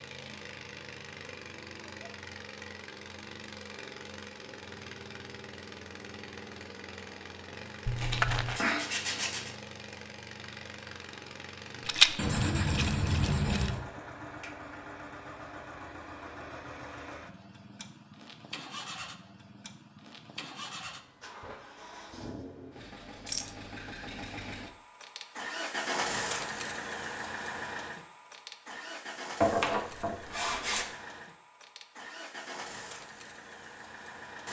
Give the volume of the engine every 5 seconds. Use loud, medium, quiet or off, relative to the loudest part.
medium, medium, medium, medium, medium, loud, medium.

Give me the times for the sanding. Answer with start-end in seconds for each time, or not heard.
8.0-9.5, 12.2-13.8, 29.4-30.9.